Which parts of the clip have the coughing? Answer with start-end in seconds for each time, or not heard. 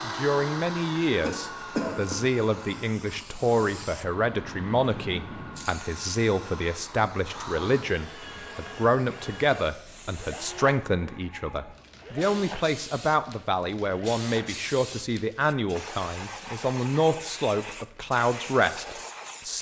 1.1-2.2.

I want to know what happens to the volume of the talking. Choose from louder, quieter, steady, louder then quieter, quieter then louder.
steady.